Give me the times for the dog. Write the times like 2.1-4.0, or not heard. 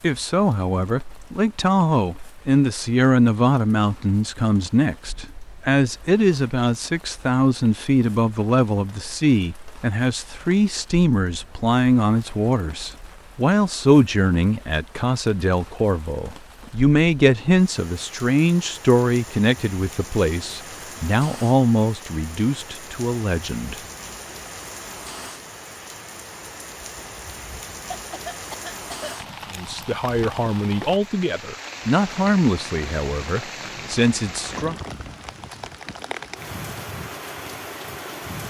not heard.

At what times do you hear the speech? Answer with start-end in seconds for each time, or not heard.
0.0-23.8, 29.5-34.8.